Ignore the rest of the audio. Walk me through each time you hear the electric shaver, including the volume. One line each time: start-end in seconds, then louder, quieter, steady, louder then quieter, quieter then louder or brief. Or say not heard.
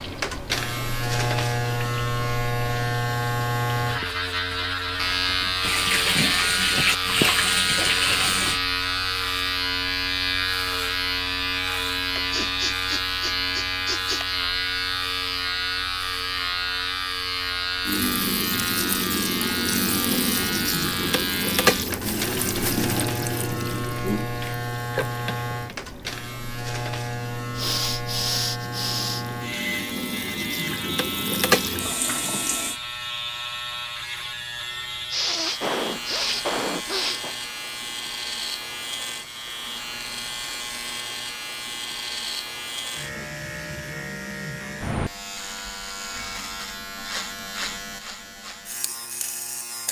0.0-49.8 quieter.